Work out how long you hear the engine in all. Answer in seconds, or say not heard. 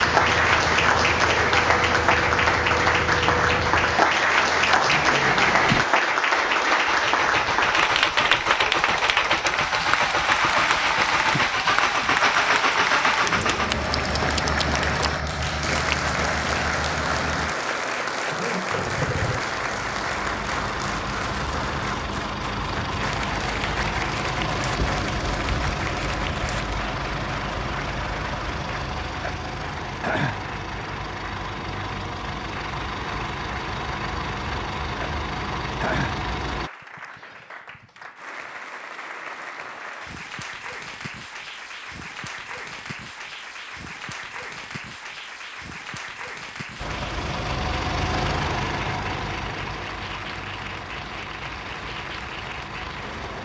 43 s.